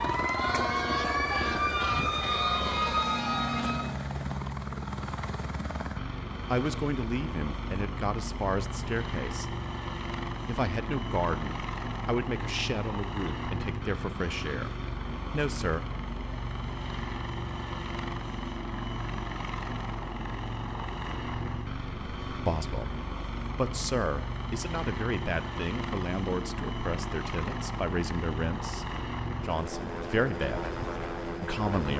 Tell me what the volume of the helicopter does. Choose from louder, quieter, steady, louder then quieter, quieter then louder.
steady.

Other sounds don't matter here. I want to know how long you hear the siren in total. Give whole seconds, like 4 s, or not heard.
4 s.